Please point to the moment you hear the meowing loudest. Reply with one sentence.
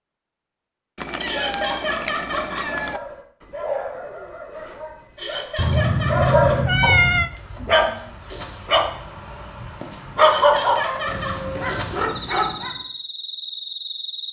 The loudest moment of the meowing is at 7 seconds.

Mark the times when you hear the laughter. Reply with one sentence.
The laughter can be heard from 1.2 to 2.7 s, from 5.2 to 6.6 s and from 10.2 to 11.4 s.